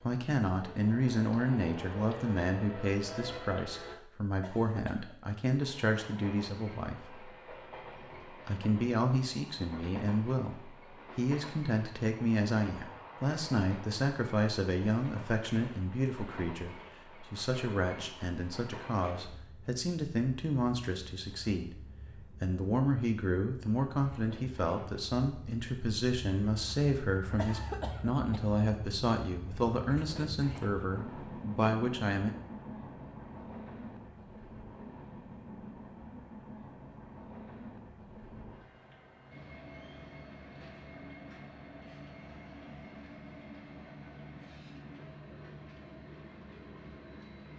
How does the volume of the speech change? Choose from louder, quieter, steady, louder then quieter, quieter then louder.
steady.